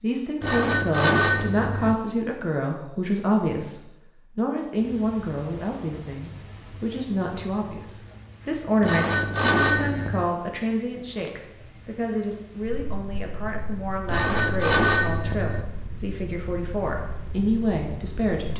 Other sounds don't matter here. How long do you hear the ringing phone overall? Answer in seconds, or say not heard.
5 s.